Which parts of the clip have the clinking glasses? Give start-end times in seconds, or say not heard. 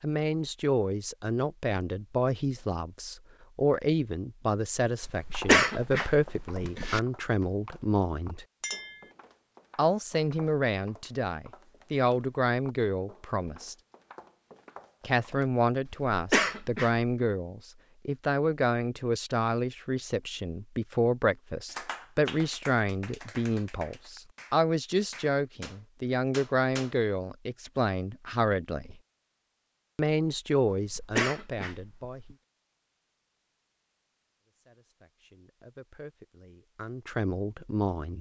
8.6-9.1.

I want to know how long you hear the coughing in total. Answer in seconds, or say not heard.
5 s.